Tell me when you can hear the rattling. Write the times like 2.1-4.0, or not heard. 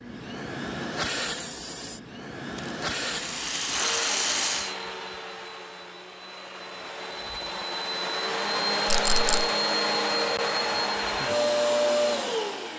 2.5-4.8, 8.8-9.5.